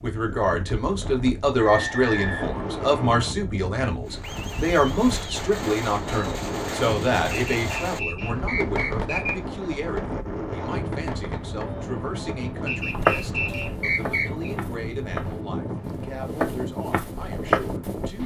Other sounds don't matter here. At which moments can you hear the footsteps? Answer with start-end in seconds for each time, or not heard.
12.9-18.2.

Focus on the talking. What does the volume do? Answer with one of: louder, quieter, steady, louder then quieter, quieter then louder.
quieter.